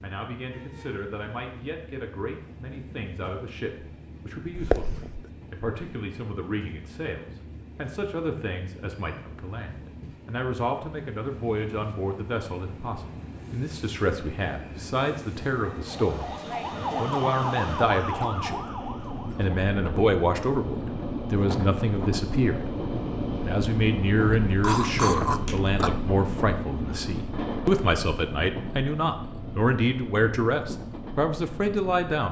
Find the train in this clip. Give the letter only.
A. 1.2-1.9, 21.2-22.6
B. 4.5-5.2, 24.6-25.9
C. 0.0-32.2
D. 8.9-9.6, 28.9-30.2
C.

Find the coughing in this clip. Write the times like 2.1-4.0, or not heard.
4.5-5.2, 24.6-25.9.